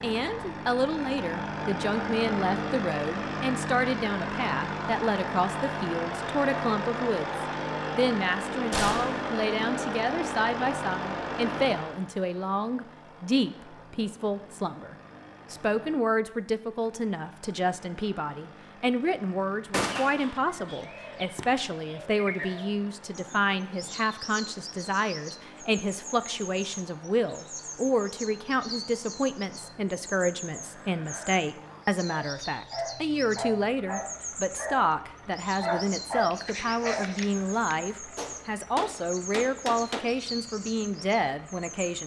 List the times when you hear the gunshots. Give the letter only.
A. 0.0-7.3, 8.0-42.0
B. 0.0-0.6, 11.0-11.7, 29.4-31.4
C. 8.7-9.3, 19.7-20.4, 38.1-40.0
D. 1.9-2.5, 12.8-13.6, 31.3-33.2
C.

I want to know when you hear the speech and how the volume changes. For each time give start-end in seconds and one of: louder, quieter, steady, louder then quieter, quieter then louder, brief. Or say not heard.
0.0-7.3 steady
8.0-42.0 steady.